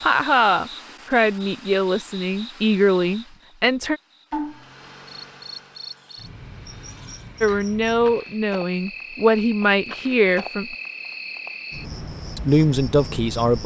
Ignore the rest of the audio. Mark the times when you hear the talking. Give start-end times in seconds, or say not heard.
0.0-4.0, 7.4-10.8, 12.3-13.6.